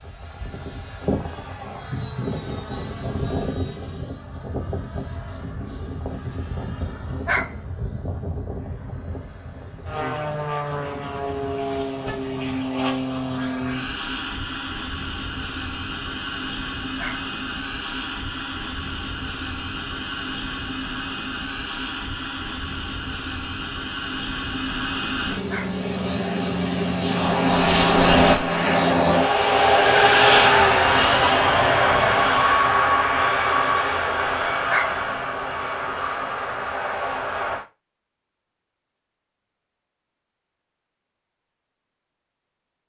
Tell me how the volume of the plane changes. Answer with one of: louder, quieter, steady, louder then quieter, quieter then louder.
louder.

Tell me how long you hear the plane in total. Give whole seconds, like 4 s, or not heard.
38 s.